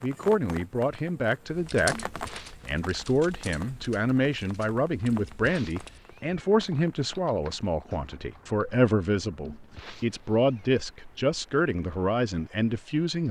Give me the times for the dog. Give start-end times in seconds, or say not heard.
not heard.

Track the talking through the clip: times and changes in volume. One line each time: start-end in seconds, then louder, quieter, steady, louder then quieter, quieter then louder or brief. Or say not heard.
0.0-13.2 steady.